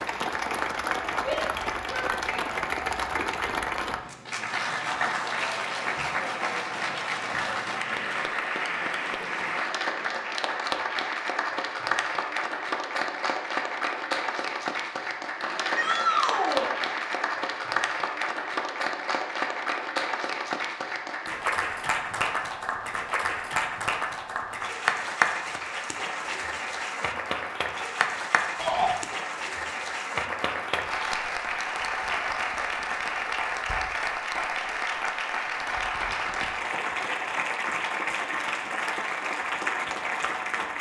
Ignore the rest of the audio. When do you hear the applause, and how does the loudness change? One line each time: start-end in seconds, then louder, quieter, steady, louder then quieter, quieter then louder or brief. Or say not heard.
0.0-40.7 steady.